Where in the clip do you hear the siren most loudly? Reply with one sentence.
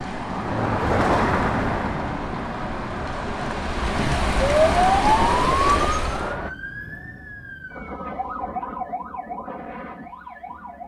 The loudest moment of the siren is at 5 seconds.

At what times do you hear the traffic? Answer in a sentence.
You can hear the traffic from 0.0 to 6.5 s.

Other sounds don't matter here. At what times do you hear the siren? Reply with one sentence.
You can hear the siren from 4.3 to 10.8 s.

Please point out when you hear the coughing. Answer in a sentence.
The coughing can't be heard in this clip.